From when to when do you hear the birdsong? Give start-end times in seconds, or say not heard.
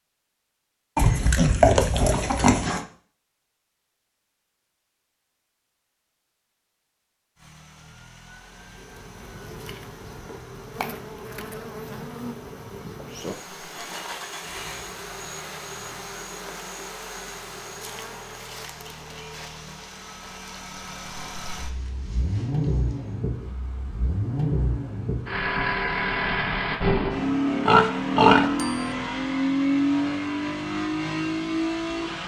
not heard.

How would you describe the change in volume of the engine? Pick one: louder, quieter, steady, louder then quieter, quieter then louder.
louder.